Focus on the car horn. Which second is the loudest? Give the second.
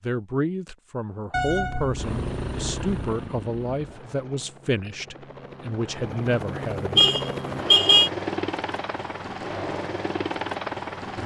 8 s.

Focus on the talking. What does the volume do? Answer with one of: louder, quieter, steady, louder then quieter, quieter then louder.
steady.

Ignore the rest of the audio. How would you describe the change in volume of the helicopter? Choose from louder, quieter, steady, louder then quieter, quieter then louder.
quieter then louder.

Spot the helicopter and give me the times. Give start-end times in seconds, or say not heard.
1.9-11.2.